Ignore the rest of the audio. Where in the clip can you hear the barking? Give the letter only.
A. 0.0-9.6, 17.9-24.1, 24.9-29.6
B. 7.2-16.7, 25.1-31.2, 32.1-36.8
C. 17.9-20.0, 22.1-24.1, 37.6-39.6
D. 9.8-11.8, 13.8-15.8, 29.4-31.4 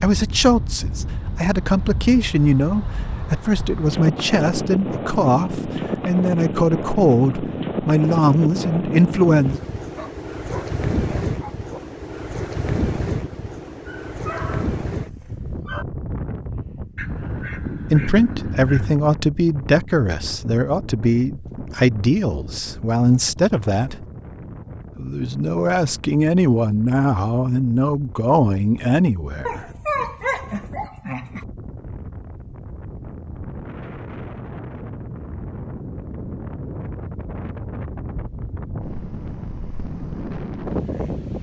D.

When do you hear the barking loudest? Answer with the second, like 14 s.
30 s.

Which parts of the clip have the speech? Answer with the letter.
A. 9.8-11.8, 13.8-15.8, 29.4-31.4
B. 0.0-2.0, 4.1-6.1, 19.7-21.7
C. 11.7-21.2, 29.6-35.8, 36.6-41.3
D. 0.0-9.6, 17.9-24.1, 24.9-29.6
D.